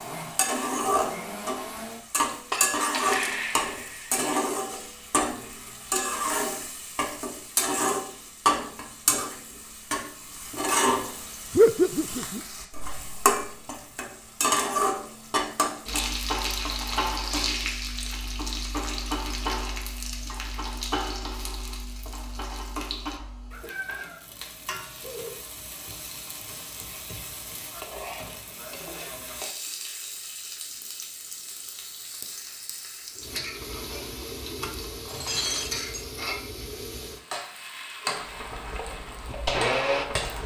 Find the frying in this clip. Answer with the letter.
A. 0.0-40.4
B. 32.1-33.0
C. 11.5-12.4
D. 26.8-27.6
A.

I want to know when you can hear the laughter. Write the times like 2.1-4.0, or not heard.
11.5-12.4.